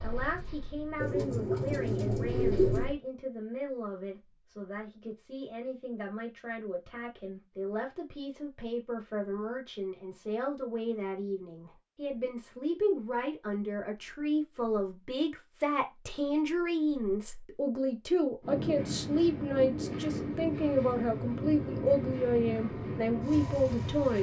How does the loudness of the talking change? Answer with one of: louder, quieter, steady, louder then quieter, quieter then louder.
louder.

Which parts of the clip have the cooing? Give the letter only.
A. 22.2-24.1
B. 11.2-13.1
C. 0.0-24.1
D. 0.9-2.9
D.